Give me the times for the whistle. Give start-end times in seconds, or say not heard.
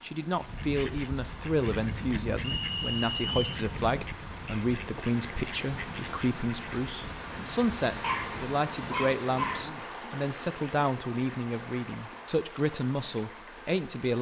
2.4-3.6.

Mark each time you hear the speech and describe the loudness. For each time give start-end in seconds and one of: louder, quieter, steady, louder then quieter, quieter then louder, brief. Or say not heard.
0.0-14.1 steady.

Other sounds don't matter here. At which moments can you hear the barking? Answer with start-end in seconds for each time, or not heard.
8.0-9.8.